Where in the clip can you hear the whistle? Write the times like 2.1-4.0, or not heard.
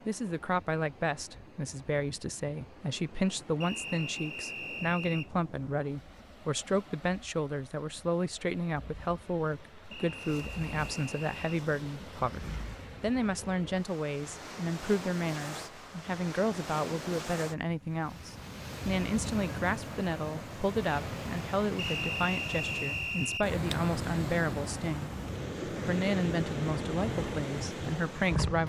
3.6-5.3, 9.9-11.6, 21.8-23.5.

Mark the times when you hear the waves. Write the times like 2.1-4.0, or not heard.
0.0-28.6.